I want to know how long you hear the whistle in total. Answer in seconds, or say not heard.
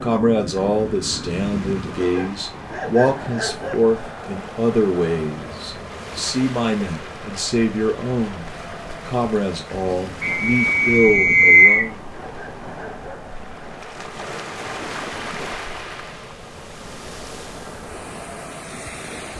2 s.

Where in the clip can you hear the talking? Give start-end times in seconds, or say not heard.
0.0-12.0.